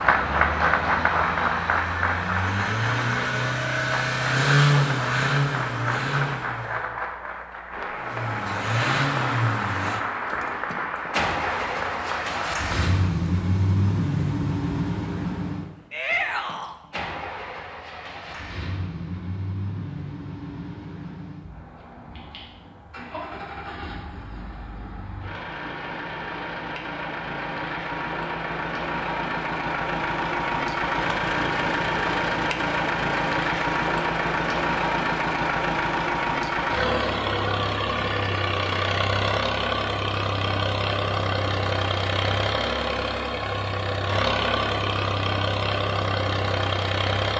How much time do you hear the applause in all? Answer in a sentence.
You can hear the applause for 13 seconds altogether.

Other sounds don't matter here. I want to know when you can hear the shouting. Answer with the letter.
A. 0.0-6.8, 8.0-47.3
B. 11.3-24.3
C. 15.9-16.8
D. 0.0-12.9
C.